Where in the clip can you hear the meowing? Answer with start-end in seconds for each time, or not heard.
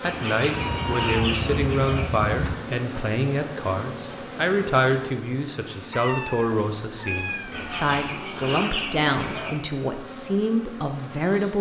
0.5-2.5, 5.9-7.7.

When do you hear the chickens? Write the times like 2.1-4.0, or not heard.
0.0-2.0, 7.5-9.6.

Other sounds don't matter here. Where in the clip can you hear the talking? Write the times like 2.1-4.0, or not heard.
0.0-11.5.